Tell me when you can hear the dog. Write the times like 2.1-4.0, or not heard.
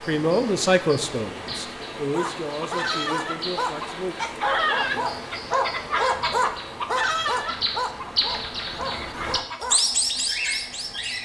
2.1-9.8.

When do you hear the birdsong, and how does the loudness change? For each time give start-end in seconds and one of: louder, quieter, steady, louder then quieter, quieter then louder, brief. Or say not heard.
0.0-11.2 louder.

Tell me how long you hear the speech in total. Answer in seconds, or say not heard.
4 s.